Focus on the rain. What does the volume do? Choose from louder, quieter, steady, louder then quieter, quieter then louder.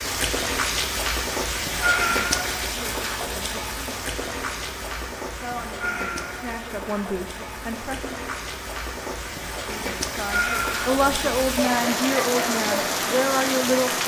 quieter then louder.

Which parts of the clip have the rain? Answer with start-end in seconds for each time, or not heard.
0.0-14.0.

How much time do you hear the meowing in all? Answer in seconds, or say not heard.
2 s.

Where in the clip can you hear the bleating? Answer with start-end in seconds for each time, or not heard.
not heard.